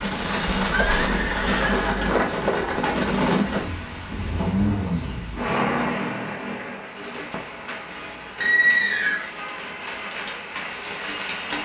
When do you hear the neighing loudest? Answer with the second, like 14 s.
9 s.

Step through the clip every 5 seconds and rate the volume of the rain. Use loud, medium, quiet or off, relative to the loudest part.
loud, medium, medium.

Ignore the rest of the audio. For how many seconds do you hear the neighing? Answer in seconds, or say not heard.
2 s.